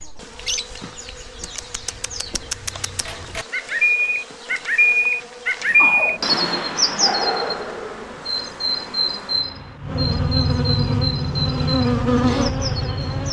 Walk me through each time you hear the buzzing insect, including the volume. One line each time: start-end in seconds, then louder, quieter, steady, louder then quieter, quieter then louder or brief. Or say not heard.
0.0-13.2 louder.